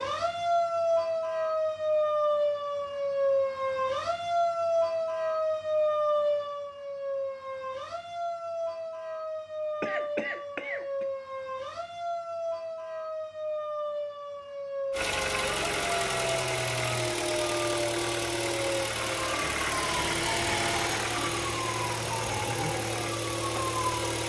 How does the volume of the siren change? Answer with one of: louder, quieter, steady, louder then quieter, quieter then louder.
quieter.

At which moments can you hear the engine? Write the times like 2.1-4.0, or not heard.
14.9-24.2.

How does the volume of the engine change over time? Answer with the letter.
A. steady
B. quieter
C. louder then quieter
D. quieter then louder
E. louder
A.